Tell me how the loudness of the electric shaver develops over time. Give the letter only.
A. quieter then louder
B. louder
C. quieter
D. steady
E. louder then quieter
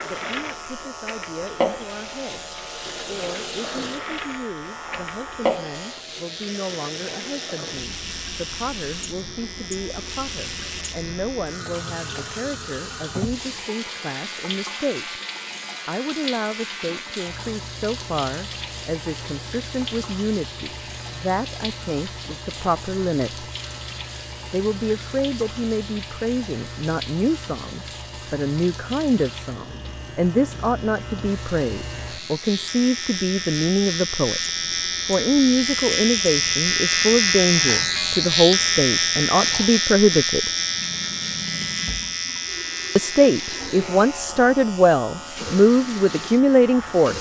B.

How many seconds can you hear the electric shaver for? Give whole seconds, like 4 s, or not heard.
47 s.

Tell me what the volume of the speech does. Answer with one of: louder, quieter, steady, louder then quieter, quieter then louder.
louder.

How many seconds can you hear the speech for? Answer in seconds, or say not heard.
42 s.